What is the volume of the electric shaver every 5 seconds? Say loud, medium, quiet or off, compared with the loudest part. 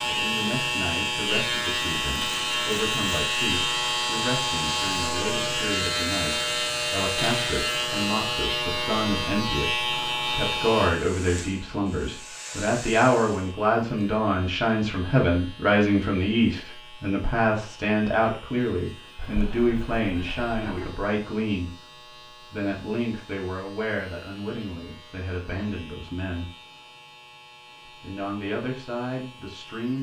loud, loud, medium, quiet, quiet, quiet.